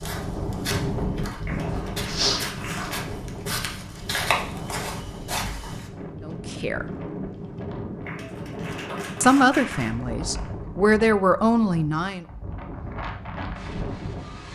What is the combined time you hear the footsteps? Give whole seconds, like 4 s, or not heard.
6 s.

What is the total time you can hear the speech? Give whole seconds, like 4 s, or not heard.
4 s.